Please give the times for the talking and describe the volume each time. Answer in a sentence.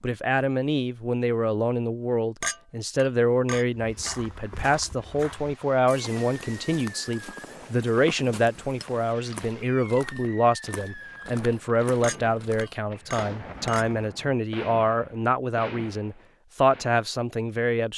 You can hear the talking from 0.0 to 17.9 s, at a steady volume.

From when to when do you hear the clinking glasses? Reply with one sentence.
You can hear the clinking glasses from 2.4 to 4.2 s, from 8.8 to 9.3 s and from 12.0 to 13.8 s.